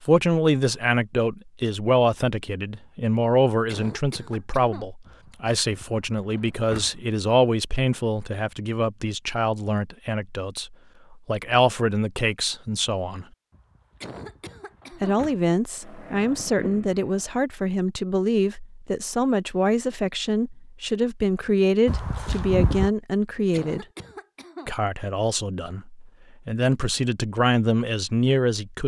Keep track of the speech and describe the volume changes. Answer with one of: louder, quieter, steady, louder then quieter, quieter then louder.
steady.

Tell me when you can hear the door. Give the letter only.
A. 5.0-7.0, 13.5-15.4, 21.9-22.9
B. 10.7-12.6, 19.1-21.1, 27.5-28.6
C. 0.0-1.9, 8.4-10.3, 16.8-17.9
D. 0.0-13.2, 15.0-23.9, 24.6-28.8
A.